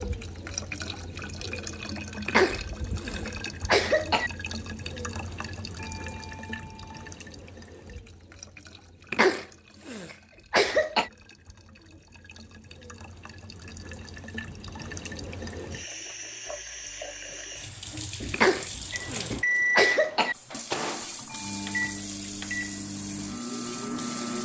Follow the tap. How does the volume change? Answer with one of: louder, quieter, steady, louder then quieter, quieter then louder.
quieter then louder.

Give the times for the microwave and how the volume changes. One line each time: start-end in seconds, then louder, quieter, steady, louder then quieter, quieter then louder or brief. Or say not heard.
18.9-24.4 quieter.